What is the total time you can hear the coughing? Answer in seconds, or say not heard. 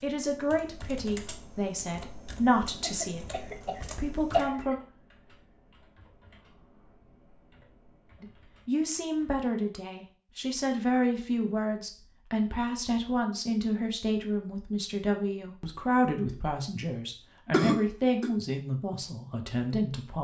3 s.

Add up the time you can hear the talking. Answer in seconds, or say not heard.
17 s.